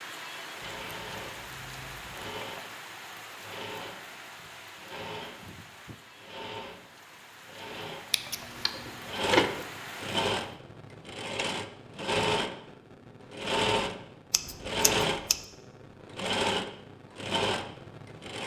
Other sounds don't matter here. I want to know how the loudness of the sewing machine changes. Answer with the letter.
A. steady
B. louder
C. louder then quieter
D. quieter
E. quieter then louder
B.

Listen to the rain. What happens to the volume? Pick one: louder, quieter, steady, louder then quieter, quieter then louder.
quieter then louder.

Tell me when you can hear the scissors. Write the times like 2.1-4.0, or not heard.
0.6-2.4, 8.1-9.7, 14.3-15.4.